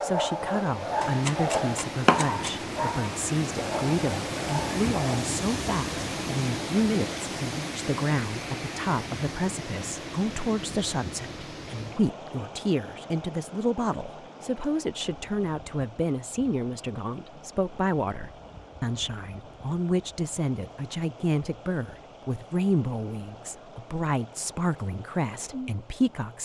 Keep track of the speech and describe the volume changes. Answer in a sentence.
The volume of the speech stays about the same.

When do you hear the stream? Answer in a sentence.
You can hear the stream from 0.0 to 26.3 s.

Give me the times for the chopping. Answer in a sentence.
The chopping can be heard from 1.0 to 2.6 s.